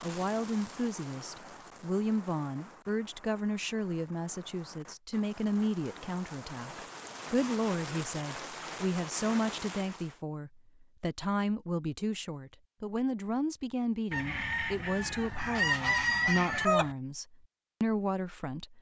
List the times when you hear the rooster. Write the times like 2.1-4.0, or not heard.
14.1-16.9.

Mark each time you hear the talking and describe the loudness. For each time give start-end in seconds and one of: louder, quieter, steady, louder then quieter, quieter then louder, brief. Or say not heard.
0.0-18.7 steady.